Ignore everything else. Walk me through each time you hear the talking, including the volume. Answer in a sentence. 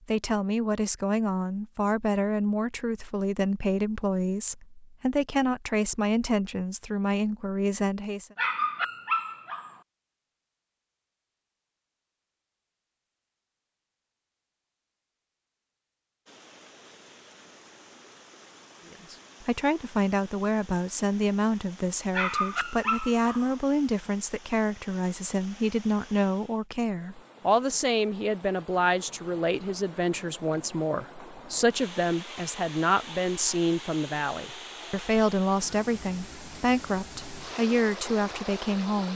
The talking can be heard from 0.1 to 8.3 s, at a steady volume; and from 18.9 to 39.1 s, at a steady volume.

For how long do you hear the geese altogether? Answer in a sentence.
The geese can't be heard in this clip.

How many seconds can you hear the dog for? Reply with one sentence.
The dog can be heard for 3 seconds in total.